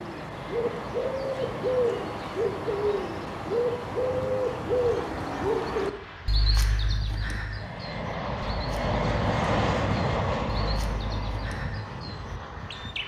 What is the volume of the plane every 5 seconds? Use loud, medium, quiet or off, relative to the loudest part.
medium, loud, loud.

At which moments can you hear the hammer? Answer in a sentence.
You can't hear the hammer here.